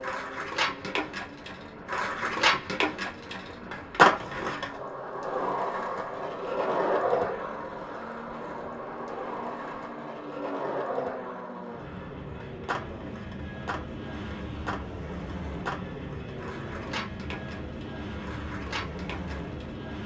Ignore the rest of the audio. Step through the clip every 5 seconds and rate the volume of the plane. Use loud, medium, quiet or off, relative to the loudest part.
medium, medium, loud, loud.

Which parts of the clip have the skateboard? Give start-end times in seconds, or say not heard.
0.0-19.9.